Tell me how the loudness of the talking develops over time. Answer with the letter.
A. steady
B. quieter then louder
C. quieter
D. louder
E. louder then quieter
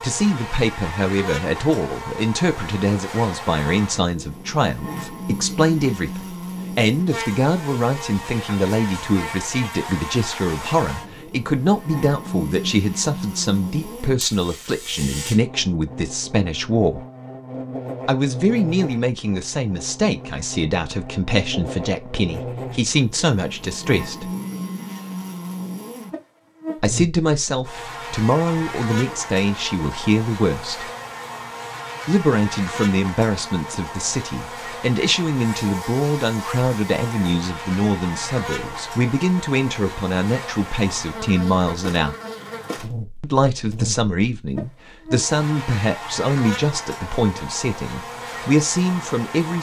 A.